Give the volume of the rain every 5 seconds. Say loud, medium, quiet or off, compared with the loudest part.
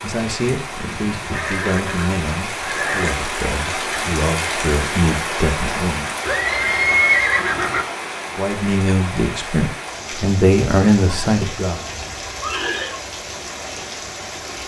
loud, loud, medium.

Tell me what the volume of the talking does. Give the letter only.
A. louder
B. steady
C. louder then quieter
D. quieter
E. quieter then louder
A.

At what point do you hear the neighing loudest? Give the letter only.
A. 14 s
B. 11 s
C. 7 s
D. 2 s
C.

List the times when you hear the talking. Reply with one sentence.
The talking can be heard from 0.0 to 6.1 s and from 8.3 to 11.8 s.